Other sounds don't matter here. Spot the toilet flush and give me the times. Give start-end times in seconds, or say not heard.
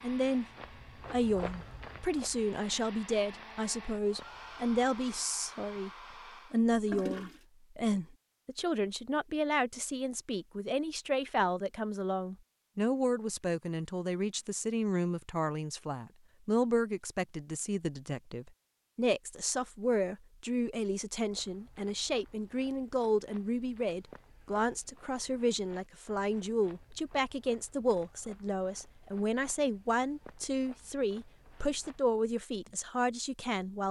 5.8-7.4.